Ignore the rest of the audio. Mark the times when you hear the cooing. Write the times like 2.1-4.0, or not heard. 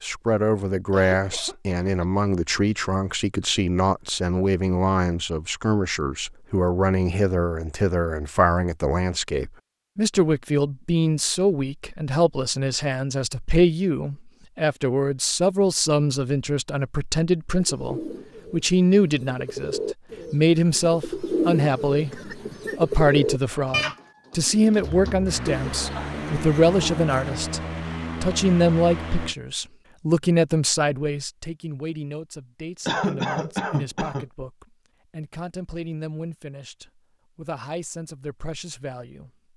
17.6-27.4.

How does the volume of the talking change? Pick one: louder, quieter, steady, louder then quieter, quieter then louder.
quieter.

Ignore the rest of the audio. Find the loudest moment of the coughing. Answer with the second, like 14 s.
33 s.